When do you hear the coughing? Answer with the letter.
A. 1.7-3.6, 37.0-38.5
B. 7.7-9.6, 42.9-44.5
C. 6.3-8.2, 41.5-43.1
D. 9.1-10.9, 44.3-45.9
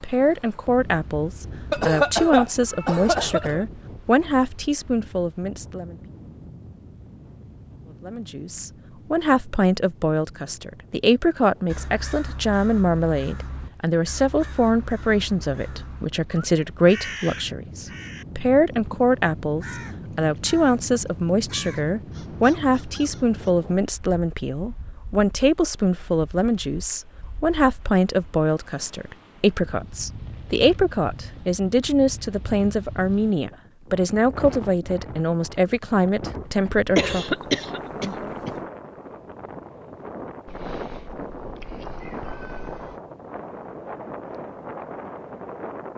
A.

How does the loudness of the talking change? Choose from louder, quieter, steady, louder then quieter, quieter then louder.
steady.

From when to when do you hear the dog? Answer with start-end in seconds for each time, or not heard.
not heard.